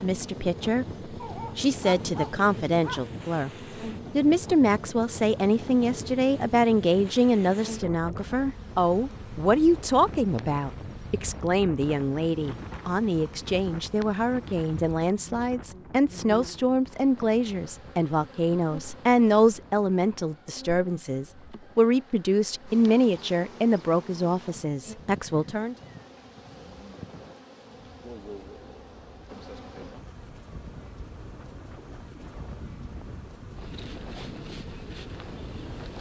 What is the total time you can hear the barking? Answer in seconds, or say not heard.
2 s.